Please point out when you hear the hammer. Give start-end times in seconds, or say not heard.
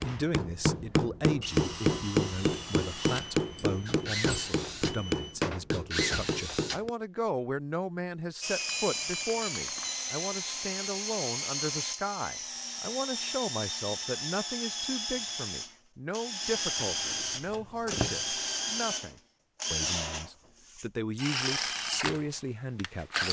0.0-6.9.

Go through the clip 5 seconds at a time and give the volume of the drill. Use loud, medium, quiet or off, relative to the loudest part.
medium, loud, loud, loud, loud.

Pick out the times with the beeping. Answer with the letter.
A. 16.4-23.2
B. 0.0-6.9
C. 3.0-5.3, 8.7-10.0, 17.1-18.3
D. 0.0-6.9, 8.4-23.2
C.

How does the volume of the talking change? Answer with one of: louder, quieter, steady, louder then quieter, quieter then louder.
steady.